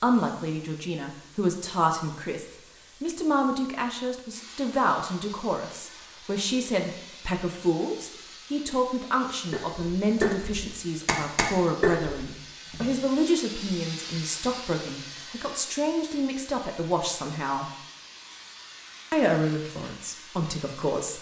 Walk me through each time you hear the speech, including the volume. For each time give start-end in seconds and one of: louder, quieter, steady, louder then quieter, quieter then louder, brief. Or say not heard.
0.0-17.7 steady
19.1-21.1 brief.